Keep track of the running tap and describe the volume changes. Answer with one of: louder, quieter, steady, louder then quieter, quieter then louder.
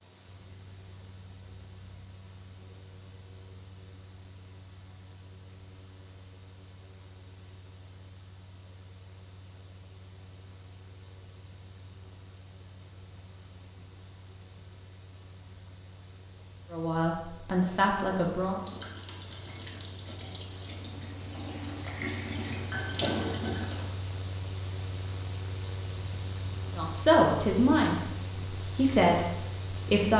louder.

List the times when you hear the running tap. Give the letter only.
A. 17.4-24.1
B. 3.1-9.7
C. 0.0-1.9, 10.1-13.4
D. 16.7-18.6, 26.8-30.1
A.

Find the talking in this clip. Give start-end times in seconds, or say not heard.
16.7-18.6, 26.8-30.1.